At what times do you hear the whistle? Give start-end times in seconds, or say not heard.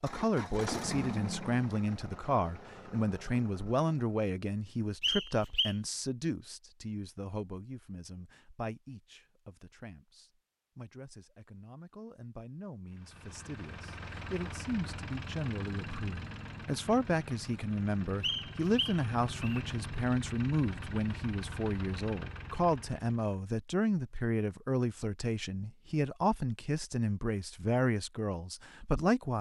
5.0-5.8, 18.2-19.6.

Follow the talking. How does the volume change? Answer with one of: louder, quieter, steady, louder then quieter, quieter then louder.
quieter then louder.